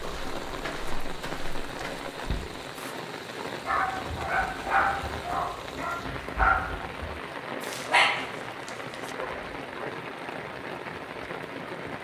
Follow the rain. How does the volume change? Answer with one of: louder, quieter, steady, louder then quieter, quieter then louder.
steady.